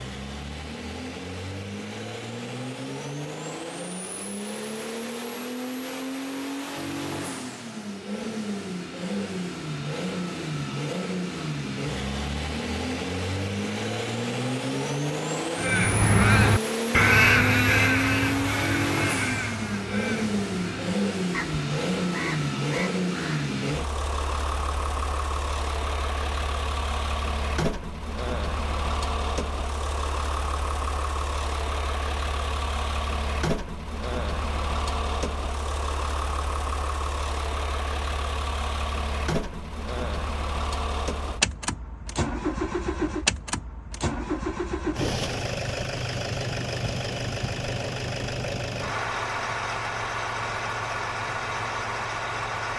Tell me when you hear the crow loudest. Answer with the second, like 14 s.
17 s.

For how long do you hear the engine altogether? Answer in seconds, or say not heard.
53 s.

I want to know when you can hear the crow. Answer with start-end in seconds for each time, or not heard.
15.6-23.5.